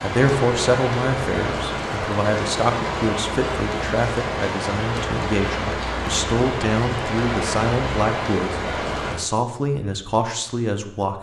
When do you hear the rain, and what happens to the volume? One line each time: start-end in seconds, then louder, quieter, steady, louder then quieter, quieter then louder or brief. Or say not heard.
0.0-9.2 steady.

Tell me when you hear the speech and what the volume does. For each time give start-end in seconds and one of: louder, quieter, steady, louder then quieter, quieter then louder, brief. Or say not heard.
0.0-11.1 steady.